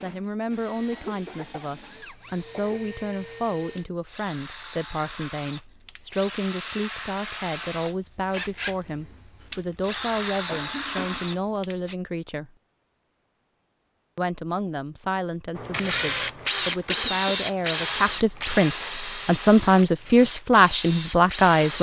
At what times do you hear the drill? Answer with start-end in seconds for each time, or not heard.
0.0-11.9, 15.6-21.7.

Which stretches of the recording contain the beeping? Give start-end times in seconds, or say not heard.
not heard.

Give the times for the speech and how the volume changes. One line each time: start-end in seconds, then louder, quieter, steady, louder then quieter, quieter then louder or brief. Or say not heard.
0.0-12.5 steady
14.2-21.7 louder.